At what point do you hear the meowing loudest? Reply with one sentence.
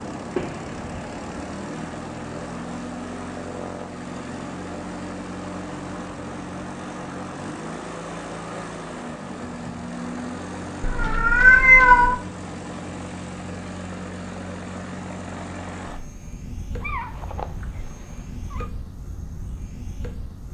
The volume of the meowing peaks at 12 seconds.